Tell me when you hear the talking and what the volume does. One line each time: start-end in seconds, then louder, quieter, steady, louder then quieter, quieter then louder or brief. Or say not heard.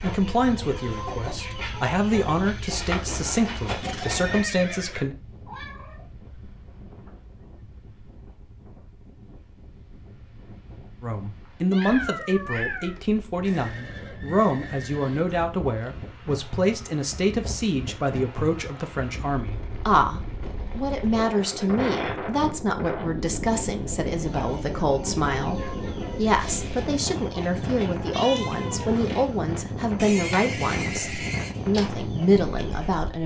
0.0-5.2 steady
11.0-33.2 steady.